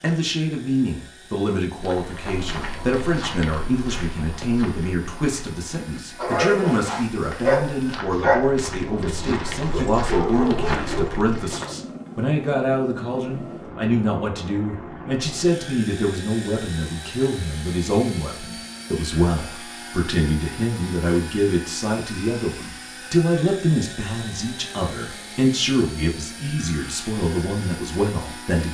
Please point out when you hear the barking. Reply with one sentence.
The barking can be heard from 6.2 to 11.7 s.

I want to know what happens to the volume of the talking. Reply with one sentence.
The loudness of the talking stays about the same.